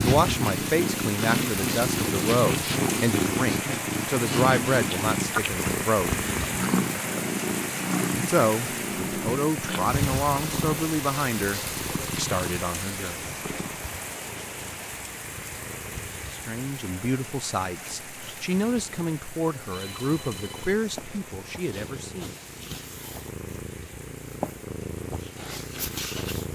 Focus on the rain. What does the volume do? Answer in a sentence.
The loudness of the rain goes down.